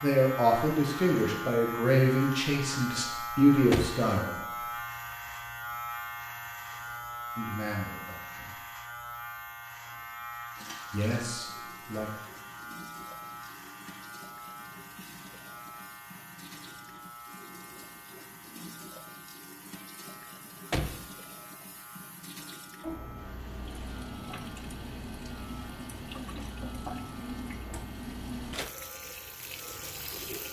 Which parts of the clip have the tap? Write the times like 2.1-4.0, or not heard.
10.5-30.4.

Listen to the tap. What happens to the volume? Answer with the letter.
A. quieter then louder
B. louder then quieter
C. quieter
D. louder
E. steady
D.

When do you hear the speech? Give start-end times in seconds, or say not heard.
0.0-4.5, 7.3-8.6, 10.9-12.1.